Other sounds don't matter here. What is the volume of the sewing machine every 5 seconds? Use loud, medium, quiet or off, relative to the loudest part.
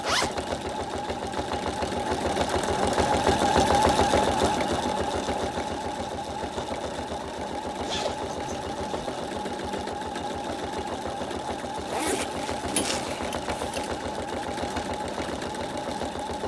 loud, medium, medium, medium.